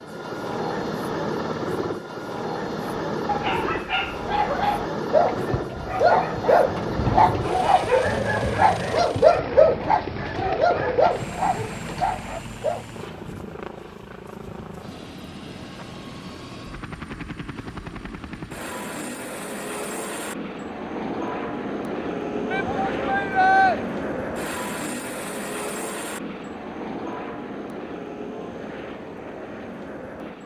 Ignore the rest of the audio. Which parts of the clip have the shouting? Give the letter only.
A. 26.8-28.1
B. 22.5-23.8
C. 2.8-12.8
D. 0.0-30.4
B.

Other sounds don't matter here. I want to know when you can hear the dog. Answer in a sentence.
The dog can be heard from 2.8 to 12.8 s.